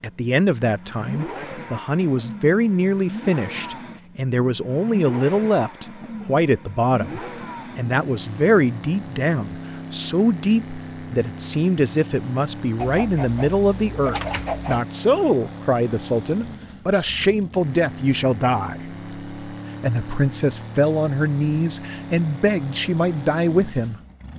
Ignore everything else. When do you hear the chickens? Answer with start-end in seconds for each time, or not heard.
12.8-14.8.